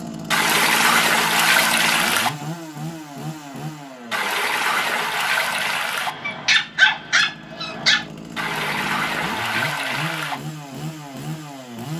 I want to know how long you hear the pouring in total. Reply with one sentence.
The pouring can be heard for 6 seconds in total.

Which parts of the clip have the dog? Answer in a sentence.
You can hear the dog from 6.0 to 8.1 s.